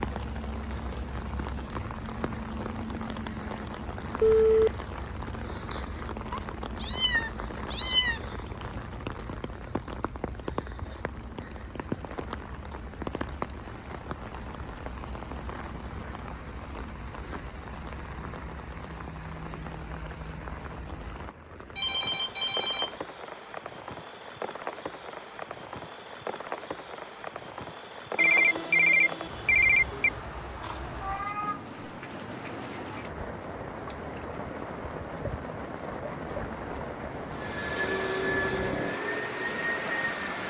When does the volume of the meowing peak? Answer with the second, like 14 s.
8 s.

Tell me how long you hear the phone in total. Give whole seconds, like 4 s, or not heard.
4 s.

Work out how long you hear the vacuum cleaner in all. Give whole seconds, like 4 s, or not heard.
3 s.